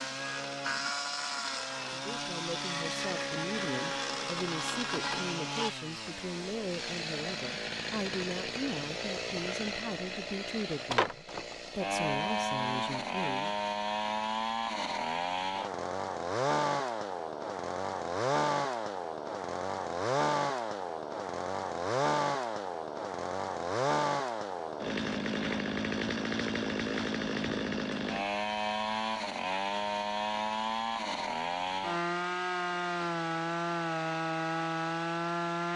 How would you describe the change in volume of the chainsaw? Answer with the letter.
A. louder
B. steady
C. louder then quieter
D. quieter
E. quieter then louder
B.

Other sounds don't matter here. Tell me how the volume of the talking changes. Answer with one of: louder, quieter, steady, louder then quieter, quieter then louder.
steady.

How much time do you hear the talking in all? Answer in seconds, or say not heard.
12 s.